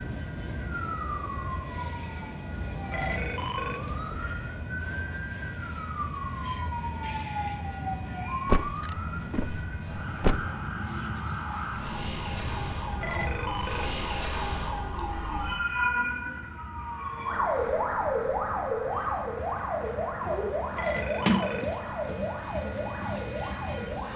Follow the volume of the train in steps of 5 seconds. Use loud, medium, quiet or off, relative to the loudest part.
loud, loud, loud, medium, loud.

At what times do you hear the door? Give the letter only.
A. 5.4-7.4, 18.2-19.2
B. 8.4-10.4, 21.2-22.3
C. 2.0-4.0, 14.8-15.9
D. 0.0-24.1
B.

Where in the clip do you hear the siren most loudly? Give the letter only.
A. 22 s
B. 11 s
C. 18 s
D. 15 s
C.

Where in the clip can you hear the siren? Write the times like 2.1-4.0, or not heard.
0.0-24.1.